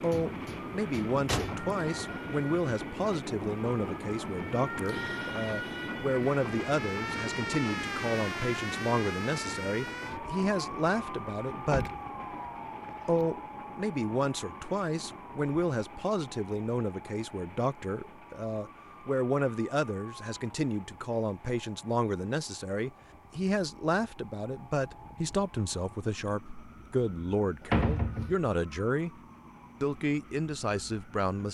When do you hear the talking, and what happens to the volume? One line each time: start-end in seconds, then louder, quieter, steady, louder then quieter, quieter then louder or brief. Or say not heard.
0.0-11.9 steady
13.1-29.1 steady
29.8-31.4 brief.